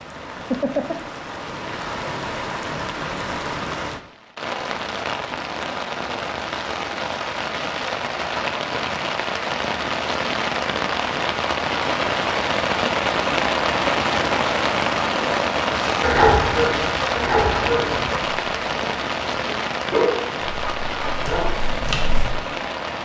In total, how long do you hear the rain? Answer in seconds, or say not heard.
23 s.